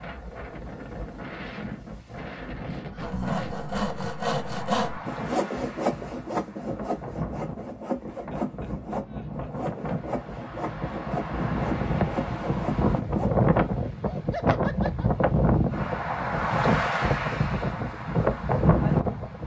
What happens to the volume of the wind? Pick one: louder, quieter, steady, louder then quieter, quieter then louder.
louder.